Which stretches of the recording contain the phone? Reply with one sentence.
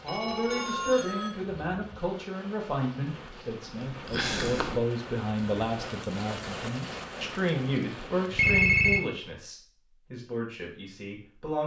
You can hear the phone from 0.1 to 1.4 s and from 8.1 to 9.0 s.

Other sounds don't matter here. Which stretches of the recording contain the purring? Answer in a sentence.
The purring can be heard from 3.1 to 4.8 s.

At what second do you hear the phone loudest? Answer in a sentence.
The loudest moment of the phone is at 9 seconds.